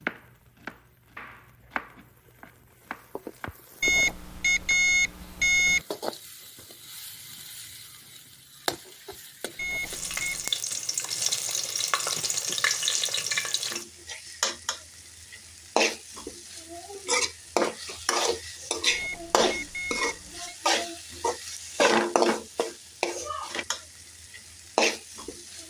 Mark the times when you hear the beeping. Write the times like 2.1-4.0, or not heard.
3.8-5.8, 9.6-10.6, 18.9-20.6.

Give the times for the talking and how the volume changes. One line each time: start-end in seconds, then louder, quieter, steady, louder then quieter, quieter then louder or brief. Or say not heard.
not heard.